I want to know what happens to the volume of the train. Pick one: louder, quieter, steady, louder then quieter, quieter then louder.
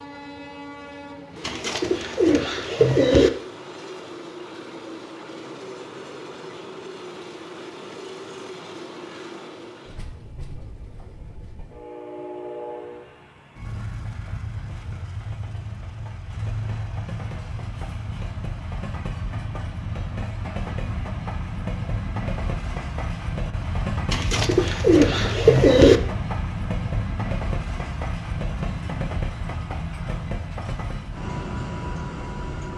louder.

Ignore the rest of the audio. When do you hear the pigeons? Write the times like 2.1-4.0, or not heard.
1.4-3.3, 24.1-26.0.